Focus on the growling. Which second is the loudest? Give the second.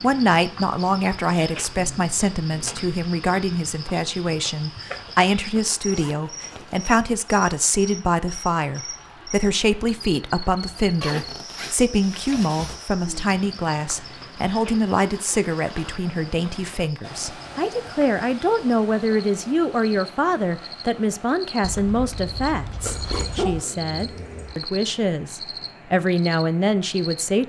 23 s.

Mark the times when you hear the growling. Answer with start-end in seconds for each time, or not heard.
1.6-2.8, 22.8-24.6.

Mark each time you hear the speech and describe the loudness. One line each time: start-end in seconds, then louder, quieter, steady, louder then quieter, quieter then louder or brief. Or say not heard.
0.0-27.4 steady.